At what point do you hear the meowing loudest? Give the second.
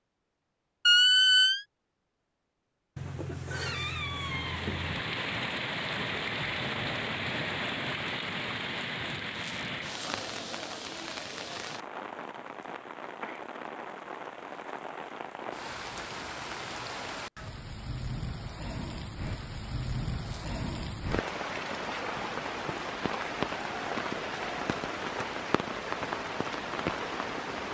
4 s.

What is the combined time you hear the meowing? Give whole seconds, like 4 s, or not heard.
2 s.